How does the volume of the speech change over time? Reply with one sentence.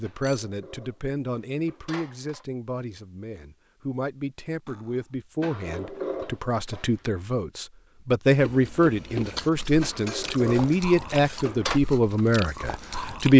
The volume of the speech goes up.